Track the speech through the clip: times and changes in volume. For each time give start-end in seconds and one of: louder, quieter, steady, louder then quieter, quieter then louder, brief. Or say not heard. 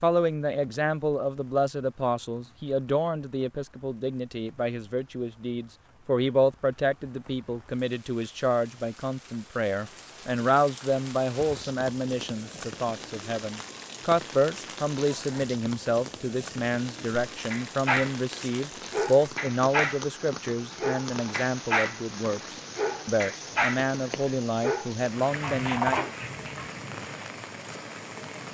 0.0-26.1 steady.